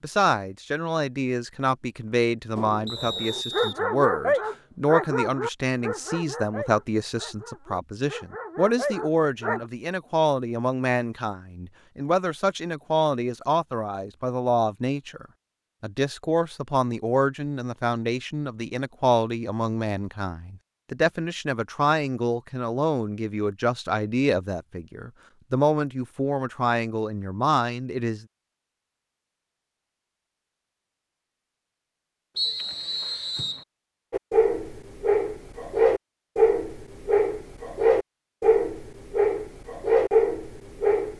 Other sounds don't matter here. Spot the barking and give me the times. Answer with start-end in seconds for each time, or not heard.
2.5-9.7, 34.1-41.1.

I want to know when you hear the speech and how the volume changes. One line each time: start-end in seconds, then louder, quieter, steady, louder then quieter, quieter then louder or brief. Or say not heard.
0.0-28.2 steady.